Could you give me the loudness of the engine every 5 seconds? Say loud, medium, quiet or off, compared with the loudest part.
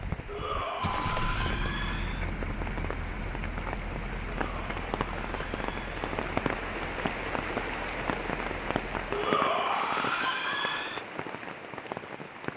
loud, medium, off.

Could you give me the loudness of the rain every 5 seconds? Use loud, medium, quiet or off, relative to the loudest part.
medium, loud, medium.